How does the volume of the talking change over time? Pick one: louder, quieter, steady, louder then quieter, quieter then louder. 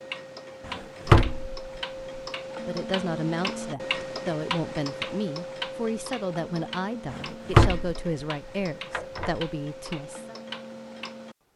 steady.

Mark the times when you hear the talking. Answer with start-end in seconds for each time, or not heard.
2.6-10.3.